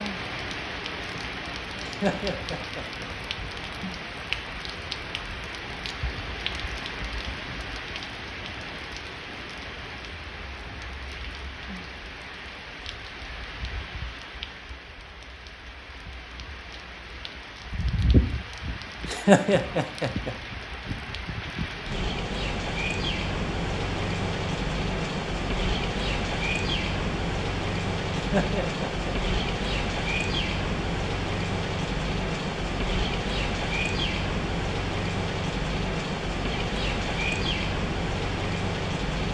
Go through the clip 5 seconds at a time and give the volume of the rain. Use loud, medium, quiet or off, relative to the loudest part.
medium, medium, medium, medium, loud, loud, loud, loud.